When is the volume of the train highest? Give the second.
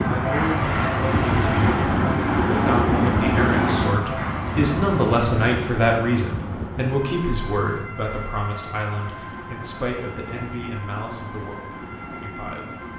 3 s.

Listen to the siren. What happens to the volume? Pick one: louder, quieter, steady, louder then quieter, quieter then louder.
quieter.